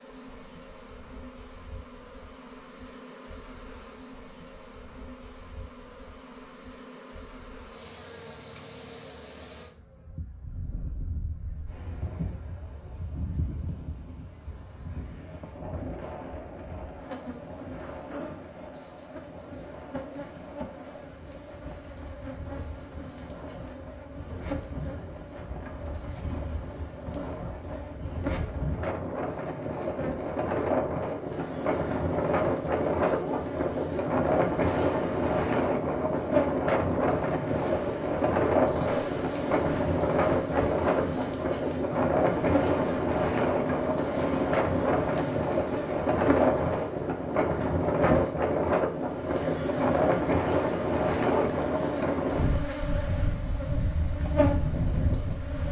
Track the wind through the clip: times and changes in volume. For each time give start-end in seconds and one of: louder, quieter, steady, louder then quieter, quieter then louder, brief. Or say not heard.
10.3-55.6 louder.